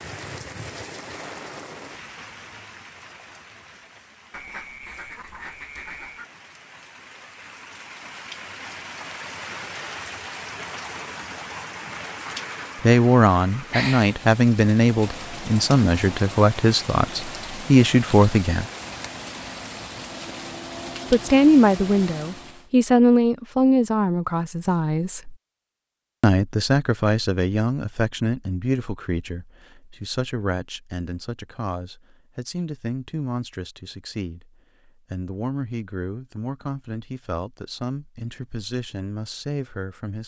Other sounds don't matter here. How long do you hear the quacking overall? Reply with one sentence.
The quacking can be heard for 2 seconds in total.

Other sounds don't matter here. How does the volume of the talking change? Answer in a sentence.
The volume of the talking goes down.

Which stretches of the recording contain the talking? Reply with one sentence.
The talking can be heard from 12.8 to 18.7 s, from 21.1 to 25.4 s and from 26.2 to 40.2 s.